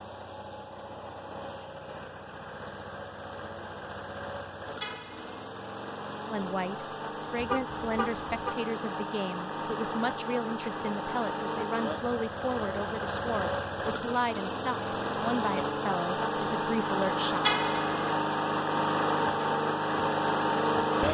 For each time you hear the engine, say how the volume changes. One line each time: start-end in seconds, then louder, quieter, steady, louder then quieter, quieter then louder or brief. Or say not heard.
0.0-21.0 louder.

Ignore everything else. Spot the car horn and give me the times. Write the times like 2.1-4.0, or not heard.
4.8-5.3, 7.3-8.6, 17.4-18.1.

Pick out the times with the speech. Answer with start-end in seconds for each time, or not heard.
6.2-17.4.